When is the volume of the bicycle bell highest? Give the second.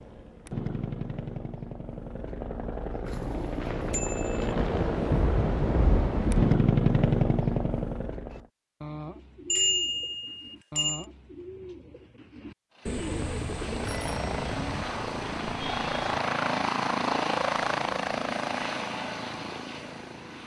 10 s.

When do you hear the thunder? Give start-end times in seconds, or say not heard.
4.5-6.5.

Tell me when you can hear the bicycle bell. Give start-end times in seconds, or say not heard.
3.9-4.5, 9.5-11.1, 13.8-14.8.